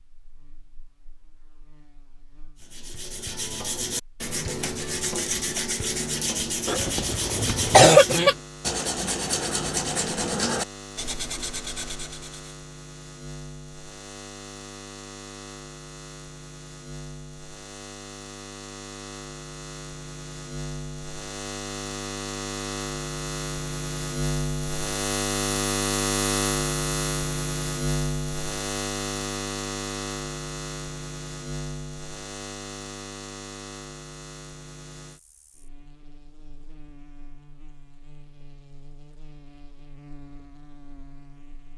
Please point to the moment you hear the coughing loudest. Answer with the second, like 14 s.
8 s.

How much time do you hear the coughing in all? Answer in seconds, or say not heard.
2 s.